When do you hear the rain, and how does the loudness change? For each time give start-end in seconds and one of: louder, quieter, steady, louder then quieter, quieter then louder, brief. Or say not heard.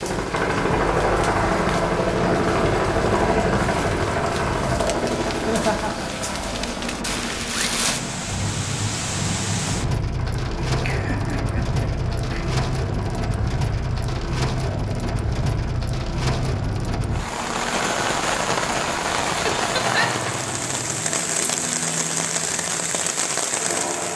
0.0-24.1 louder.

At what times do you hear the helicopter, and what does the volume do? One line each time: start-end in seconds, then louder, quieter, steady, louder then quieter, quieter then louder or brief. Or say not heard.
0.0-24.1 quieter.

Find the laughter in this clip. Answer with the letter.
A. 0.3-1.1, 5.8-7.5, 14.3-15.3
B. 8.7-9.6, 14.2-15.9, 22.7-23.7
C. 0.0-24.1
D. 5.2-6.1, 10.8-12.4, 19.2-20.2
D.